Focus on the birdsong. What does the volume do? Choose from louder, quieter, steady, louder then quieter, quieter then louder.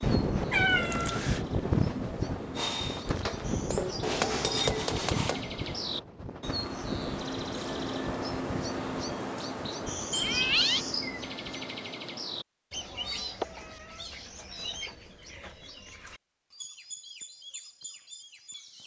louder then quieter.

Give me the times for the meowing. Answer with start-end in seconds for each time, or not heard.
0.5-1.4, 10.1-10.8, 12.8-14.7.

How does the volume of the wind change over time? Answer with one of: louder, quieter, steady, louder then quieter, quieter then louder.
quieter.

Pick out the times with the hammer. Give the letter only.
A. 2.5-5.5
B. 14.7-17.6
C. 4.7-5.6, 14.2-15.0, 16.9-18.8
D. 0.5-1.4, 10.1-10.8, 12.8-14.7
A.